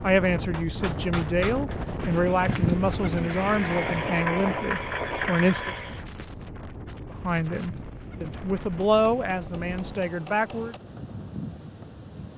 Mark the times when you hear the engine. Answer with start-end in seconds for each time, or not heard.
3.1-6.0.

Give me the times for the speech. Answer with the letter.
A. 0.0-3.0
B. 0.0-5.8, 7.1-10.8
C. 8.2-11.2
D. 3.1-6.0
B.